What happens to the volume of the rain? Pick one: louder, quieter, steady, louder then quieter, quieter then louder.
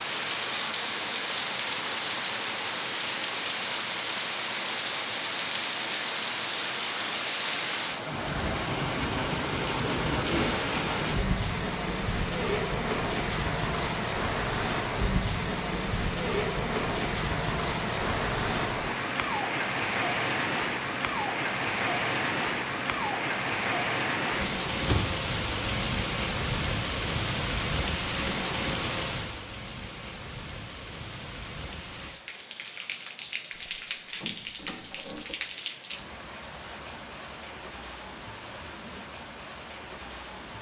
quieter.